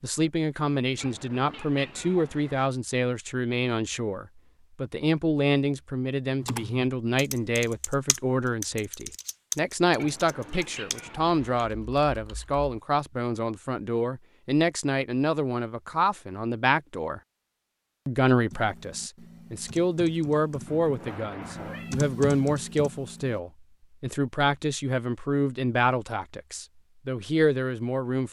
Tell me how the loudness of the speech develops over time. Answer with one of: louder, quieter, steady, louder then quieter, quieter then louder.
steady.